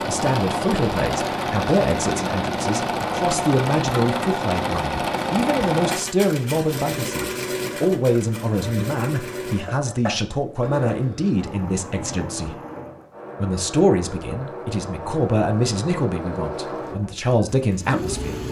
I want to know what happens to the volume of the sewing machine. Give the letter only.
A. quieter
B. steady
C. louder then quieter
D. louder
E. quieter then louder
A.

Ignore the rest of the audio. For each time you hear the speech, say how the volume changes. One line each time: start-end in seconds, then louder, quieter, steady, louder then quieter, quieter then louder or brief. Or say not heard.
0.1-12.6 steady
13.4-18.4 quieter then louder.